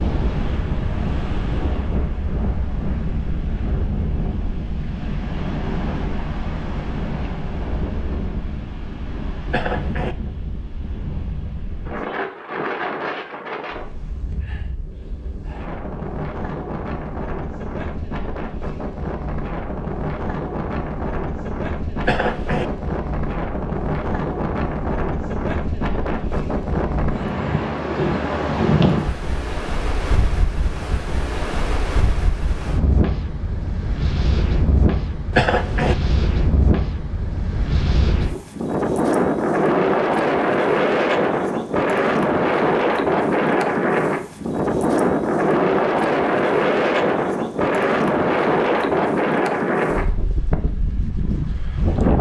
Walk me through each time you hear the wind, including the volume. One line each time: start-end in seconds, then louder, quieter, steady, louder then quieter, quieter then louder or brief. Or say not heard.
0.0-52.1 louder.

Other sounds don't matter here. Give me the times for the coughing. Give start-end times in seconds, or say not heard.
9.5-10.2, 22.0-22.6, 35.3-36.0.